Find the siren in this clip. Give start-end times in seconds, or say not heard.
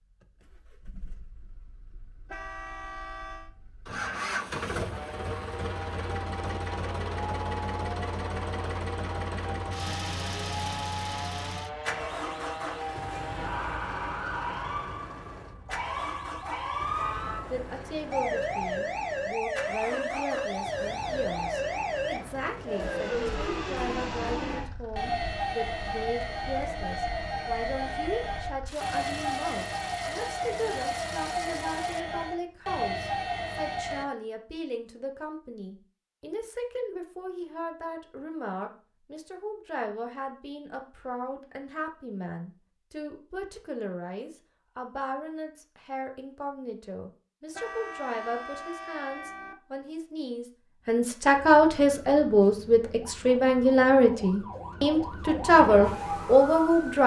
4.9-34.0, 51.4-57.0.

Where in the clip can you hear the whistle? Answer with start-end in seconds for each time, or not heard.
not heard.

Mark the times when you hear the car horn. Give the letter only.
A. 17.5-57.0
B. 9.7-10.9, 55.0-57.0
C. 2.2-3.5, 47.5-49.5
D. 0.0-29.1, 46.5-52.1
C.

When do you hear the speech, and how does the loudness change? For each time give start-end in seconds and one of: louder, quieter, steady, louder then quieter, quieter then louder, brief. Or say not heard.
17.5-57.0 louder.